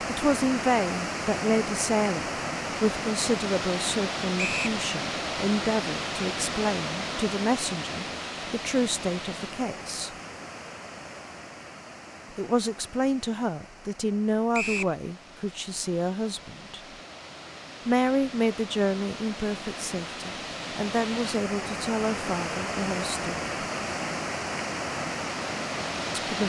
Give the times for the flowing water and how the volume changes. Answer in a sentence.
The flowing water can be heard from 0.0 to 26.4 s, getting quieter then louder.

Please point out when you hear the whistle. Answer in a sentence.
You can hear the whistle from 4.3 to 4.8 s and from 14.5 to 14.9 s.